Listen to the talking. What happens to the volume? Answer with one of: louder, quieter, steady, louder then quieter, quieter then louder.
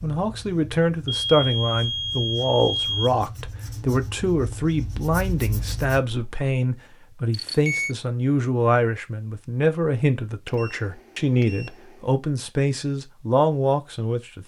steady.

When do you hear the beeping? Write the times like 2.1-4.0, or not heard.
1.1-3.1, 7.3-8.0, 10.4-12.0.